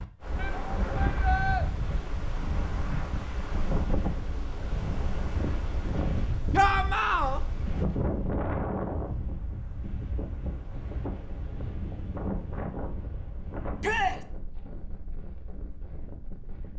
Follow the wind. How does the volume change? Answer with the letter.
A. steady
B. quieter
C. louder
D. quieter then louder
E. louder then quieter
B.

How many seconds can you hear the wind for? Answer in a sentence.
You can hear the wind for 17 seconds altogether.